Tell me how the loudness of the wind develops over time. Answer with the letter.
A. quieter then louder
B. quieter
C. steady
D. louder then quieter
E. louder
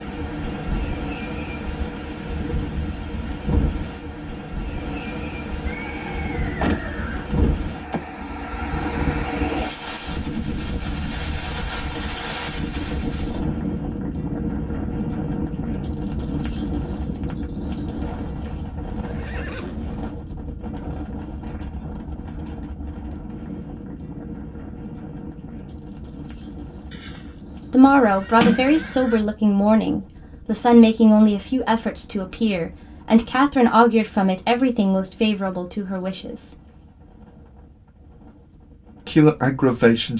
B.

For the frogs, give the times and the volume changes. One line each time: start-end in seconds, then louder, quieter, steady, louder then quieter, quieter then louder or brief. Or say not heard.
not heard.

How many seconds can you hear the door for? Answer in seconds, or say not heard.
2 s.